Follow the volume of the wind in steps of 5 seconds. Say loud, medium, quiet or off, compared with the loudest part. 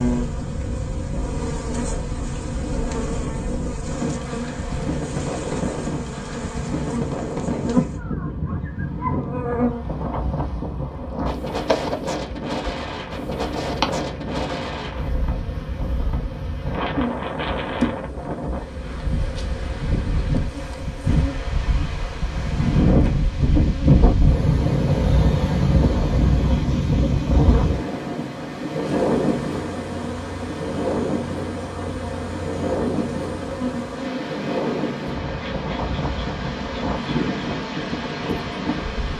medium, medium, medium, medium, loud, loud, medium, medium.